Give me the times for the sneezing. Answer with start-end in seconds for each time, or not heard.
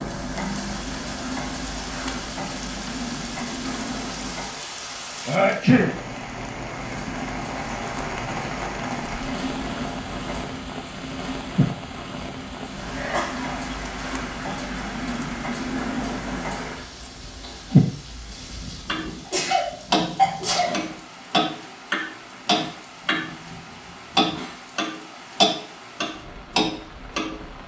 5.2-6.0, 12.8-13.7, 19.2-20.9.